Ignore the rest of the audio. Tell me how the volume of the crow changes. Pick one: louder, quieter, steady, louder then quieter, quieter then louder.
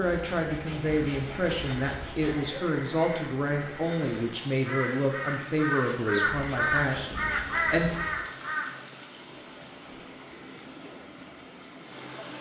louder.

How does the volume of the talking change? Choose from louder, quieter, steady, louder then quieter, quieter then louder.
steady.